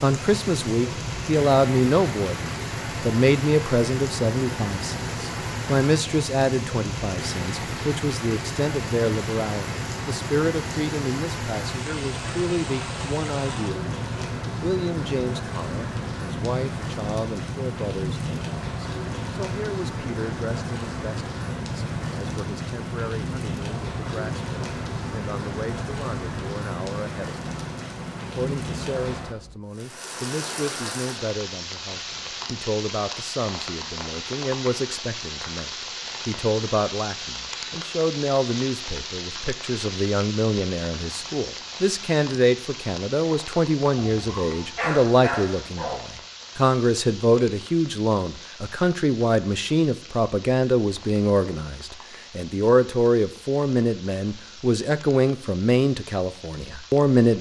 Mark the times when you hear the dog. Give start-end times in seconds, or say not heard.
44.0-46.0.